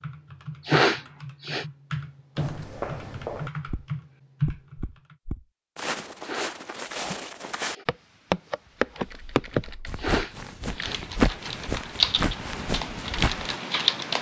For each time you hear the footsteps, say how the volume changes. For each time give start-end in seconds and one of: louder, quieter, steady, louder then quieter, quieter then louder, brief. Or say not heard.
2.4-13.5 louder.